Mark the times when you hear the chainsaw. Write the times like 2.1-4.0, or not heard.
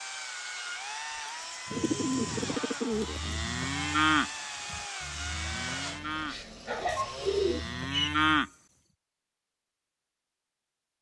0.0-7.9.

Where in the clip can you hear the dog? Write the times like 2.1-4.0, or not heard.
not heard.